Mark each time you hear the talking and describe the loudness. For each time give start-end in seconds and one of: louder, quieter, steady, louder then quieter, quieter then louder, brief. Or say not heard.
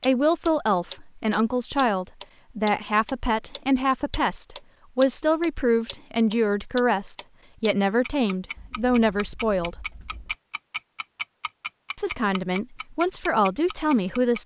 0.1-9.8 steady
11.9-14.4 brief.